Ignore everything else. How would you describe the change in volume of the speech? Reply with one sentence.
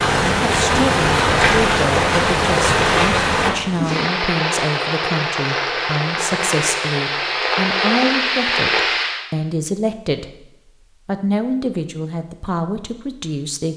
The volume of the speech stays about the same.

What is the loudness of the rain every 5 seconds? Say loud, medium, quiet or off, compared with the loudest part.
loud, loud, off.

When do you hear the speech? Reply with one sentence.
You can hear the speech from 0.0 to 13.7 s.